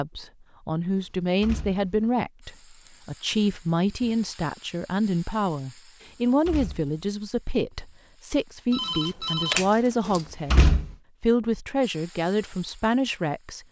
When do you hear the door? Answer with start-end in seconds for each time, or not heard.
1.4-2.1, 6.0-6.9, 10.1-10.9.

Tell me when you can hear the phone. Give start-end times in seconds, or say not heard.
8.7-10.2.